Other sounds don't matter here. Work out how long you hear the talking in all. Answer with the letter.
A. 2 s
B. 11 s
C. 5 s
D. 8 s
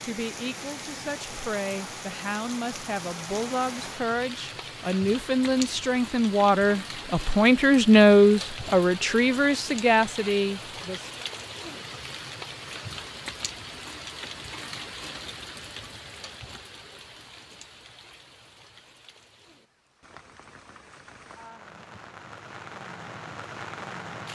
B.